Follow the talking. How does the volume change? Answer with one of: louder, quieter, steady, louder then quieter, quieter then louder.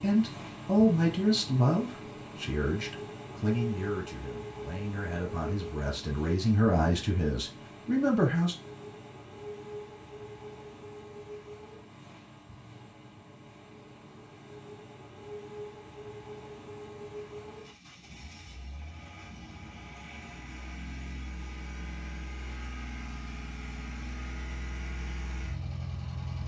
quieter then louder.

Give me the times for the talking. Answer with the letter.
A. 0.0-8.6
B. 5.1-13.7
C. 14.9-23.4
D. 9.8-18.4
A.